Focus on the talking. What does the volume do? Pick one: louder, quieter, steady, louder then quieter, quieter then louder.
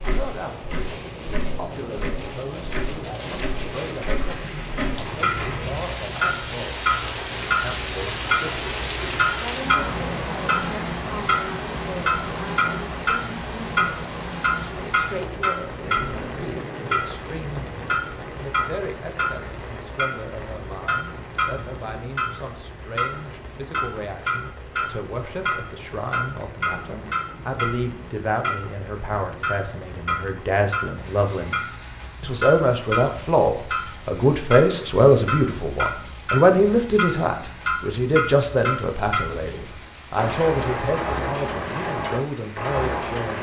louder.